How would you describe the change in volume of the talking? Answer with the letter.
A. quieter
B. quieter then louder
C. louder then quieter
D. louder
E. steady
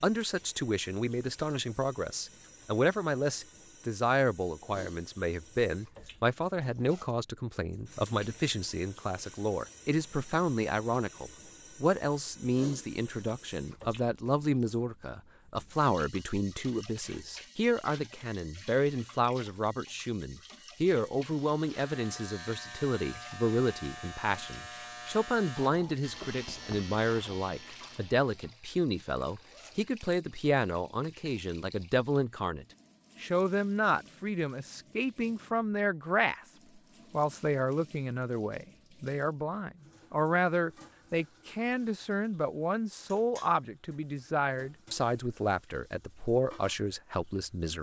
E.